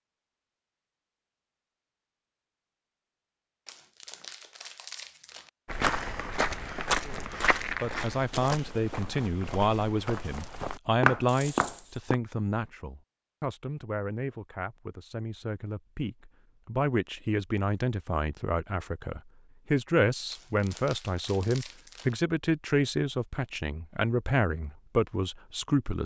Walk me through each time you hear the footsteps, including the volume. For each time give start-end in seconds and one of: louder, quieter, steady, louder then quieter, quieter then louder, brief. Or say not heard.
5.7-12.2 quieter then louder.